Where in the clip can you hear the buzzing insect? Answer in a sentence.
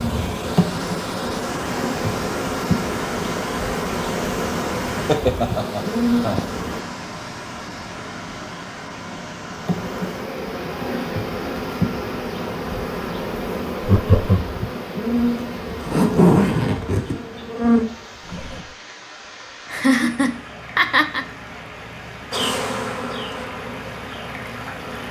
You can hear the buzzing insect from 0.0 to 6.8 s, from 9.5 to 18.8 s and from 22.3 to 25.0 s.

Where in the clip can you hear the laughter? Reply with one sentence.
You can hear the laughter from 5.0 to 6.4 s, from 13.8 to 14.4 s and from 19.7 to 21.2 s.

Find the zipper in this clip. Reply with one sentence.
The zipper can be heard from 15.8 to 17.1 s.